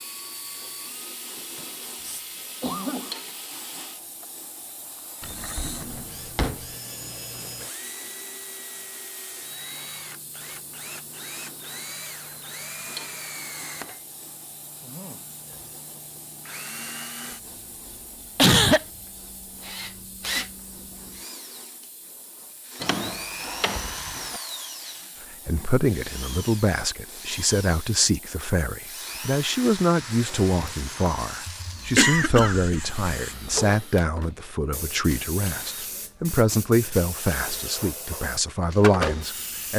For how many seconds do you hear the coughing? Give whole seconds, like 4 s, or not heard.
3 s.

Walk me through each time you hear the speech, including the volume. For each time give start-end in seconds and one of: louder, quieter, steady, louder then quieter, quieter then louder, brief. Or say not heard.
25.4-39.7 steady.